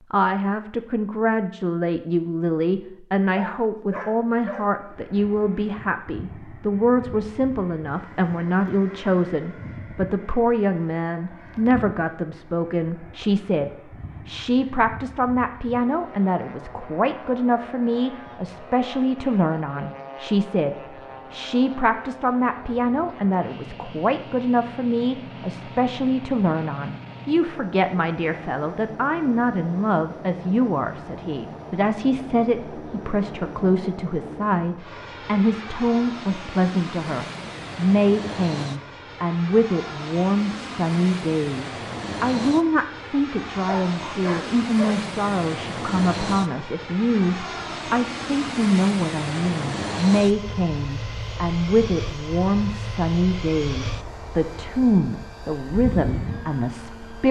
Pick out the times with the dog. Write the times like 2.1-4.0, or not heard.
3.4-4.6, 43.6-45.0.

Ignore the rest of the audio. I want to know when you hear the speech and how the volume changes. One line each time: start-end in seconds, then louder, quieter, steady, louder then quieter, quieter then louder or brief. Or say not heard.
0.1-57.2 steady.